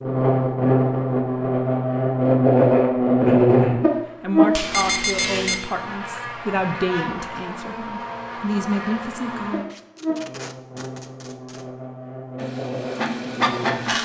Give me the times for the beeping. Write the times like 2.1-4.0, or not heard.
4.7-5.6.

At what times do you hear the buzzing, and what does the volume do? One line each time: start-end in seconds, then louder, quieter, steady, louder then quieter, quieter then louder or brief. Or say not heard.
0.0-13.9 quieter.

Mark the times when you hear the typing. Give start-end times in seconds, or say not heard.
not heard.